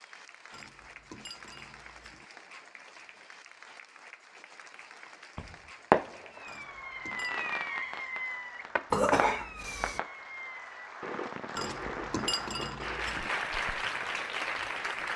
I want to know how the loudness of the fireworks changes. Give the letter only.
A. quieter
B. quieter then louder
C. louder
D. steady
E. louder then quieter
A.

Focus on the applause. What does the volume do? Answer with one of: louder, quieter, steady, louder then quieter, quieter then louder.
louder.